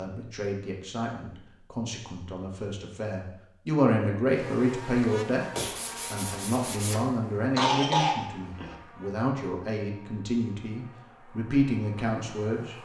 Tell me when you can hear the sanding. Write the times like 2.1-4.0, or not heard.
5.5-7.2.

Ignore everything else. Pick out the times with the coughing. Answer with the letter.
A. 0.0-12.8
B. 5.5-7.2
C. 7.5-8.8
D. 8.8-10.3
C.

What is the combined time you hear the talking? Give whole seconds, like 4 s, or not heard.
13 s.